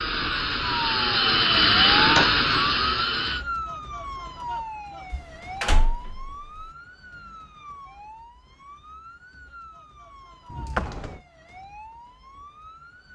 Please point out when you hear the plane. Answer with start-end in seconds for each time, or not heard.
0.0-3.5.